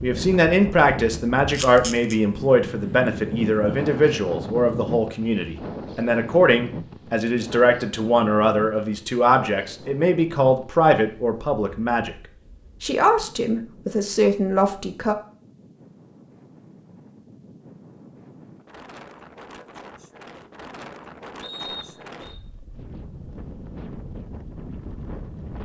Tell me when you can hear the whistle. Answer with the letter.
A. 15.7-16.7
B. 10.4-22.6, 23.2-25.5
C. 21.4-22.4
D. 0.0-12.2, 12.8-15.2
C.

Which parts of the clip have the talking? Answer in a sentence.
You can hear the talking from 0.0 to 12.2 s and from 12.8 to 15.2 s.